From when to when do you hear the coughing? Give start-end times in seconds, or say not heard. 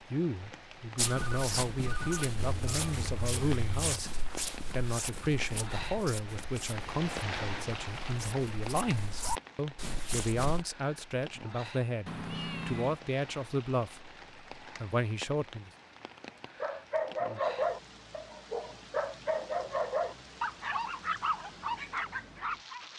not heard.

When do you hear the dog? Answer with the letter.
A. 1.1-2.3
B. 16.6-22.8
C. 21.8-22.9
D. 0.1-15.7
B.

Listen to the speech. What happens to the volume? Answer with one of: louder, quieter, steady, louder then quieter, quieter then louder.
steady.